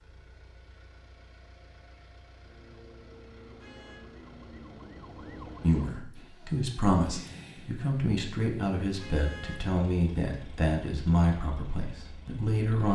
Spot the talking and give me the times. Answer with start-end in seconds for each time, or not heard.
5.6-12.8.